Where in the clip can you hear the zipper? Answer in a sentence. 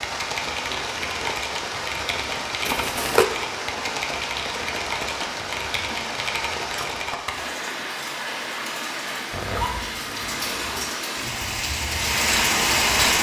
You can hear the zipper from 2.6 to 3.2 s and from 9.3 to 10.9 s.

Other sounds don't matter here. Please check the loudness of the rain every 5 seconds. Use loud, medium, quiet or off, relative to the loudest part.
medium, medium, loud.